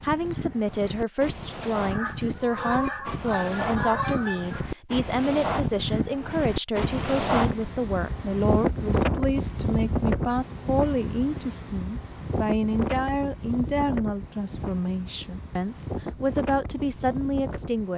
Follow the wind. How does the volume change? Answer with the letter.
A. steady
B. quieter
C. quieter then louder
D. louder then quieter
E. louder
D.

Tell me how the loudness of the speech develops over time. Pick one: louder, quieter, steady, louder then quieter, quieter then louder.
steady.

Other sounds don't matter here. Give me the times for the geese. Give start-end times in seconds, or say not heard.
1.9-4.7.